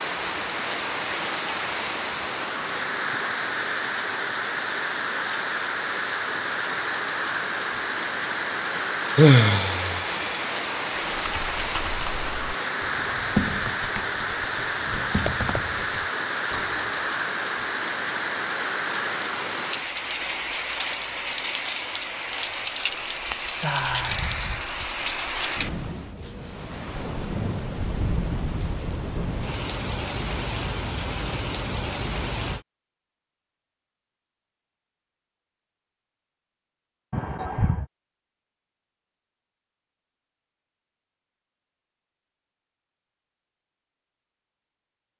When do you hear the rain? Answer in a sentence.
The rain can be heard from 0.0 to 32.6 s.